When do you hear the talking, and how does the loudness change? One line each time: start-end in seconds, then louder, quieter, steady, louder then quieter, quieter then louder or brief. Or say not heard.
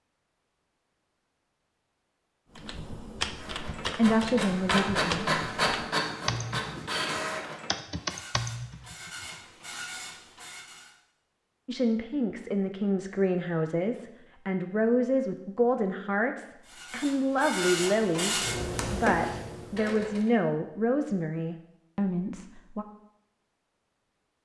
4.0-5.3 brief
11.7-22.9 steady.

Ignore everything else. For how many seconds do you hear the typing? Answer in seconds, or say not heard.
7 s.